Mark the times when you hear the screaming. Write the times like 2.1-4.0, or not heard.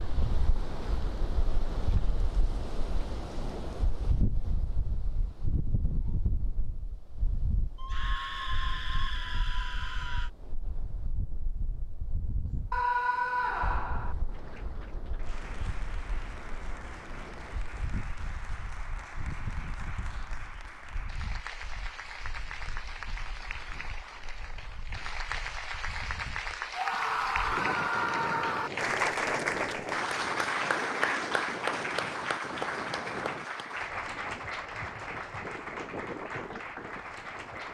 7.8-10.3, 12.7-14.2, 26.8-28.7.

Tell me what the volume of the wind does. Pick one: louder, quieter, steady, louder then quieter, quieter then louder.
quieter then louder.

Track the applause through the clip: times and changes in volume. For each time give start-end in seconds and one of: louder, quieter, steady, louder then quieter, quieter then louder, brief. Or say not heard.
14.3-37.7 louder then quieter.